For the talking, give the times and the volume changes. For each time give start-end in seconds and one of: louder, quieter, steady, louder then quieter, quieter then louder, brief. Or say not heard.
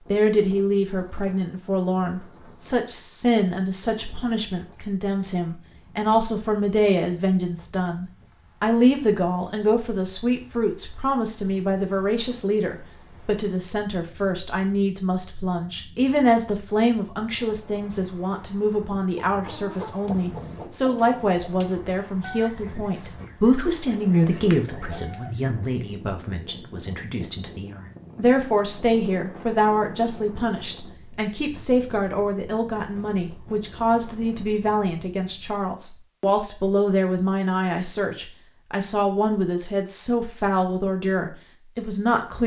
0.1-42.4 steady.